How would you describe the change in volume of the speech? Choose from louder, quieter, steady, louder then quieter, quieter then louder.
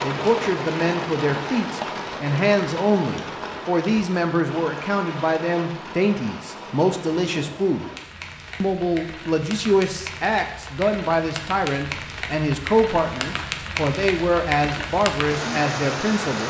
steady.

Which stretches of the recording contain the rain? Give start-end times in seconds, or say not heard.
0.0-16.4.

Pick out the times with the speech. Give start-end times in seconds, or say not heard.
0.0-7.8, 8.6-16.4.